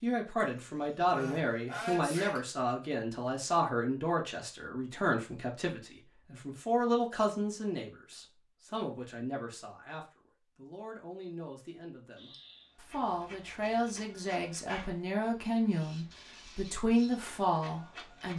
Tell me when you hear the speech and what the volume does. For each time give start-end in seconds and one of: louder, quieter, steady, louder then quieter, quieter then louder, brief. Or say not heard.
0.0-18.3 quieter then louder.